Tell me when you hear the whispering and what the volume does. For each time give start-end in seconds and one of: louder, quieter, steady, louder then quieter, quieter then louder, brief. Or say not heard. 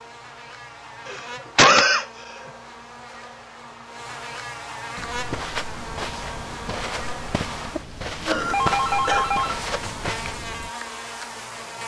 not heard.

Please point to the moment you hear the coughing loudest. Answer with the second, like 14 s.
2 s.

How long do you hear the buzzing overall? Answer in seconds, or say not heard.
12 s.